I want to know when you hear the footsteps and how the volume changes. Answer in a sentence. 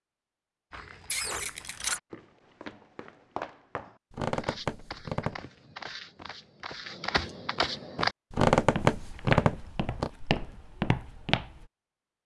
The footsteps can be heard from 0.7 to 11.7 s, getting louder.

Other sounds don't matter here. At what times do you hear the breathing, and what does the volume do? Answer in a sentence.
The breathing can't be heard in this clip.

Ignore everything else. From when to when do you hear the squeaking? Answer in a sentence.
The squeaking can be heard from 1.1 to 2.0 s, from 4.1 to 5.4 s and from 8.3 to 10.1 s.